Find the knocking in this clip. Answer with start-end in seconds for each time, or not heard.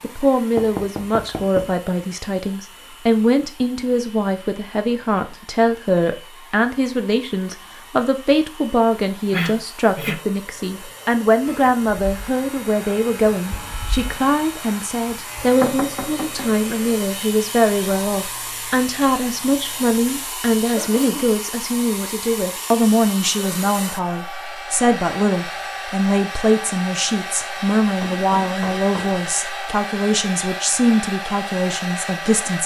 0.6-1.8, 15.6-16.5, 28.0-29.3.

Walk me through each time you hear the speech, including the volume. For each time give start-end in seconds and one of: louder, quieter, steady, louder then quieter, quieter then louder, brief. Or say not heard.
0.0-32.6 steady.